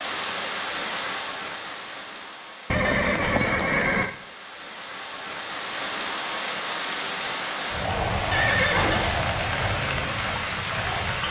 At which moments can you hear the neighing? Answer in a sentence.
You can hear the neighing from 2.7 to 4.1 s and from 8.3 to 9.2 s.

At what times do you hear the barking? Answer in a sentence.
The barking can't be heard in this clip.